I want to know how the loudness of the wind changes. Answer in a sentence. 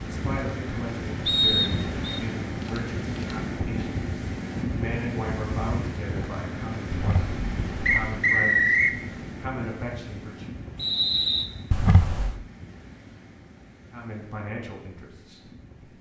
The volume of the wind goes down.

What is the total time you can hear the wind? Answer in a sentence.
The wind can be heard for 16 seconds in total.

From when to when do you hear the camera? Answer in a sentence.
The camera can be heard from 2.6 to 3.4 s, from 6.9 to 8.1 s and from 11.7 to 12.3 s.